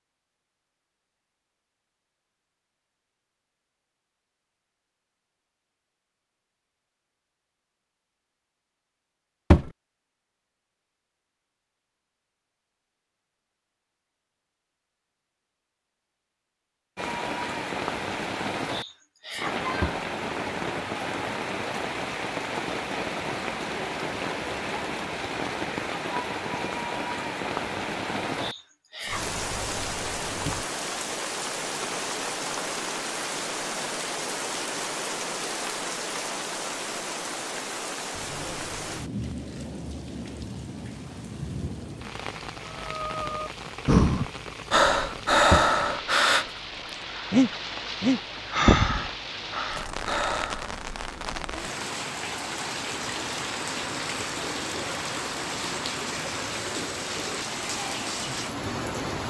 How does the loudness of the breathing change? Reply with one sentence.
The loudness of the breathing goes down.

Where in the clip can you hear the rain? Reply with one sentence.
The rain can be heard from 16.9 to 59.2 s.